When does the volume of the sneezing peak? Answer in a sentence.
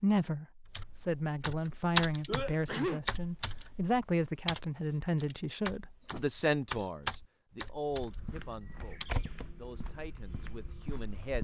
The volume of the sneezing peaks at 3 seconds.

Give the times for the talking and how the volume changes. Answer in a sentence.
You can hear the talking from 0.0 to 11.3 s, getting quieter.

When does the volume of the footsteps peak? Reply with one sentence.
The loudest moment of the footsteps is at 9 seconds.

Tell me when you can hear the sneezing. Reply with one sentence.
The sneezing can be heard from 2.2 to 3.0 s and from 6.0 to 6.9 s.